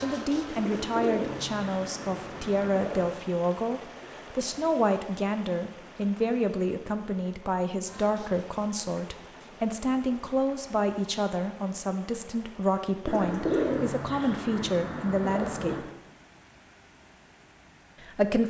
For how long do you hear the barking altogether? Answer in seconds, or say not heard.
not heard.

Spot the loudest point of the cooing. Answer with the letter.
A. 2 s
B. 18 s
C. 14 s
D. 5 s
C.